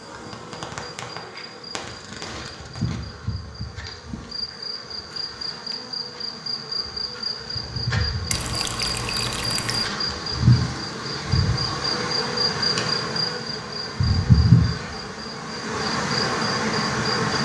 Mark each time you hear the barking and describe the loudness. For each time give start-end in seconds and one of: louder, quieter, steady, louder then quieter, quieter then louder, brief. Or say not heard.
not heard.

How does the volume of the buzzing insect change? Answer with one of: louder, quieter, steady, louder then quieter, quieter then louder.
louder.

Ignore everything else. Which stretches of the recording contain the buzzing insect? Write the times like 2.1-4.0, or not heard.
0.0-17.4.